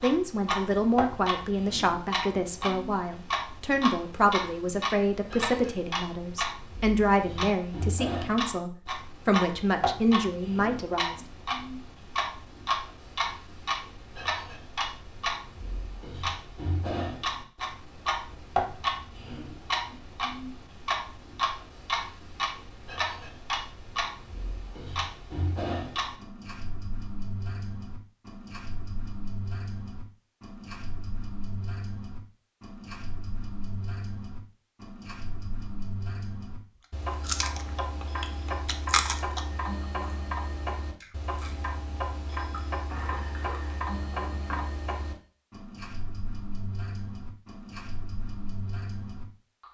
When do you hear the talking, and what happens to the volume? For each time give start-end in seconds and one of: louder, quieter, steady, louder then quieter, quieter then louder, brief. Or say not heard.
0.0-11.2 steady.